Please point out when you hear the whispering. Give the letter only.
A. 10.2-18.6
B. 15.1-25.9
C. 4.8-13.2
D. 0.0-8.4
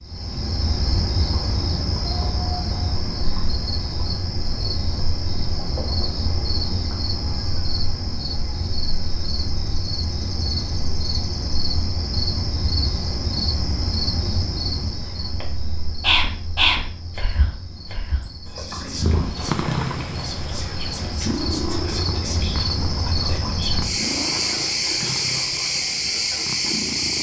B.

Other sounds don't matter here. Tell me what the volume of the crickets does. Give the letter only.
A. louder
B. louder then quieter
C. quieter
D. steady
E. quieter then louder
E.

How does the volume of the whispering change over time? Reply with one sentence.
The loudness of the whispering goes down.